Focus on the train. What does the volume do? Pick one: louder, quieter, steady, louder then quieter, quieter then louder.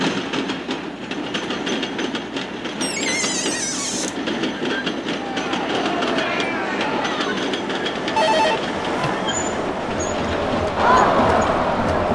steady.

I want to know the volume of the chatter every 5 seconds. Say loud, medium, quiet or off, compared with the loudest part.
off, medium, loud.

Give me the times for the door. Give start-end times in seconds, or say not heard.
2.8-4.2.